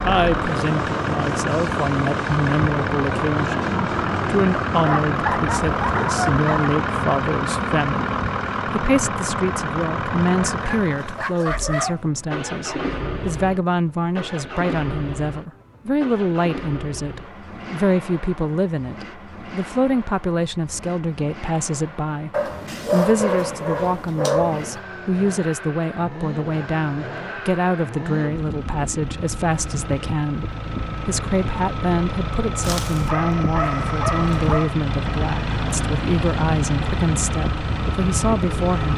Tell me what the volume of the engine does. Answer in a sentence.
The loudness of the engine goes down, then up.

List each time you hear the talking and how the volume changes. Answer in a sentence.
You can hear the talking from 0.0 to 38.9 s, at a steady volume.